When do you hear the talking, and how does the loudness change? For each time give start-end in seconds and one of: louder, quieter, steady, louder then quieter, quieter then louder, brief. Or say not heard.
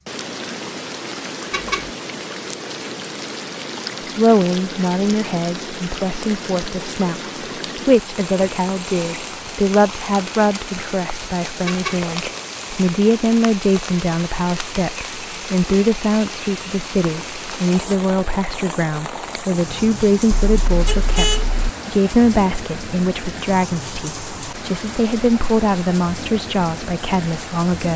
4.2-27.9 steady.